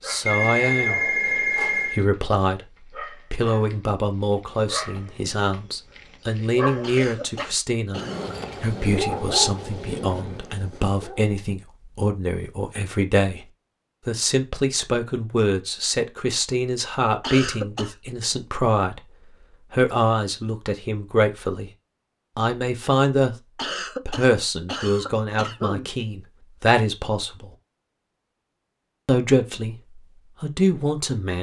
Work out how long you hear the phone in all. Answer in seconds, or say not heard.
2 s.